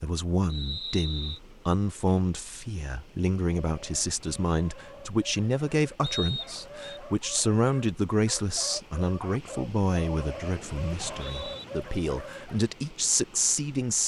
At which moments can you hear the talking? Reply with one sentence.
The talking can be heard from 0.0 to 14.0 s.